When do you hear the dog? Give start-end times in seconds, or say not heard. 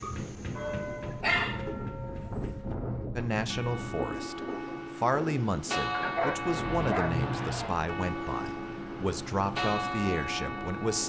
0.0-2.5, 5.9-7.8.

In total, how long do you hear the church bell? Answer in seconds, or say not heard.
11 s.